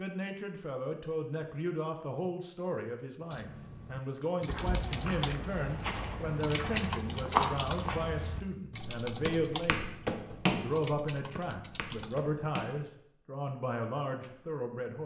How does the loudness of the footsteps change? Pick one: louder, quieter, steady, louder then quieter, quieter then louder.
louder then quieter.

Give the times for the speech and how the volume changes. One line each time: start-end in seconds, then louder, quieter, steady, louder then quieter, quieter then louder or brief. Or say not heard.
0.0-15.0 steady.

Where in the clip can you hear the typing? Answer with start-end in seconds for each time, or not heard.
3.3-12.3.